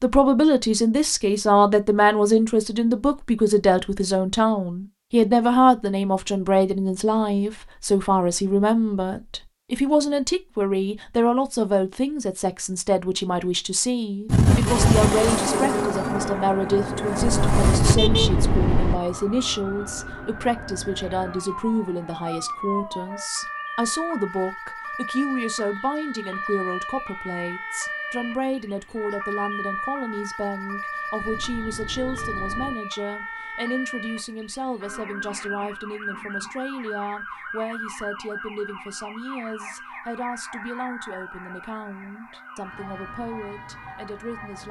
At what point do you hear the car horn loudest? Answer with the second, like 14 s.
18 s.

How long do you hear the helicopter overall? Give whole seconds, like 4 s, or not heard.
4 s.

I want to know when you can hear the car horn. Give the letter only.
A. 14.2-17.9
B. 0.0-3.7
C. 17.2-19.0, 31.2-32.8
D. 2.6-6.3
C.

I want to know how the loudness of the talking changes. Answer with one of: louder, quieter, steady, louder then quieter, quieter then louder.
quieter.